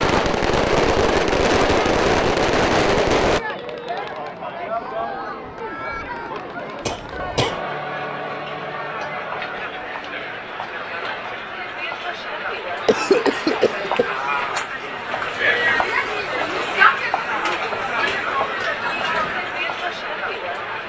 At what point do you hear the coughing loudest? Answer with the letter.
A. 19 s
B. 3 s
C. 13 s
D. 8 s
C.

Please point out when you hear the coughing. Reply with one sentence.
The coughing can be heard from 6.8 to 7.6 s and from 12.8 to 14.1 s.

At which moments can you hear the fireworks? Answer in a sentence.
You can hear the fireworks from 0.0 to 3.4 s.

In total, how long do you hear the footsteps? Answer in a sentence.
The footsteps can't be heard in this clip.